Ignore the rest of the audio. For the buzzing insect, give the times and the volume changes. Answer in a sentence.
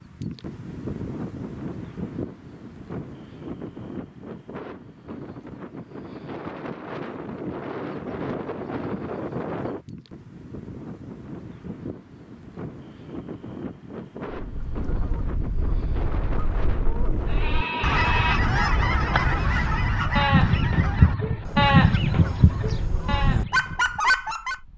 You can't hear the buzzing insect here.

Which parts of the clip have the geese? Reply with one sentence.
You can hear the geese from 14.4 to 24.6 s.